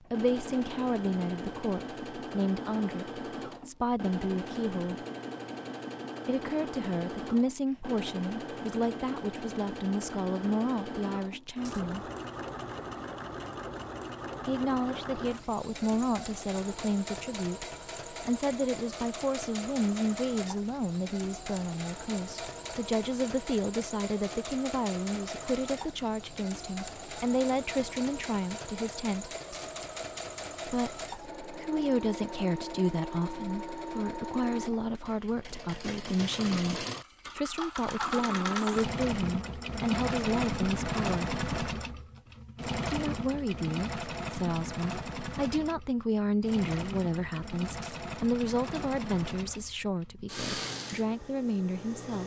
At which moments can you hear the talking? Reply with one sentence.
You can hear the talking from 0.1 to 5.0 s, from 6.2 to 12.1 s, from 14.4 to 29.3 s, from 30.6 to 41.4 s and from 42.9 to 52.2 s.